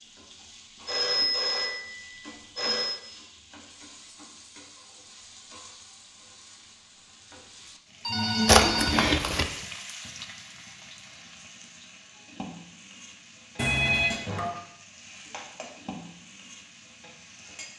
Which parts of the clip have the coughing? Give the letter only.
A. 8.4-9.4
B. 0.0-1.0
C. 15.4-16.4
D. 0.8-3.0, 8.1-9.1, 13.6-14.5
A.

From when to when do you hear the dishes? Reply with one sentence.
You can't hear the dishes here.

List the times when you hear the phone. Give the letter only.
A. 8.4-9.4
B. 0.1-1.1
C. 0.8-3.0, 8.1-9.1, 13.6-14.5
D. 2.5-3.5
C.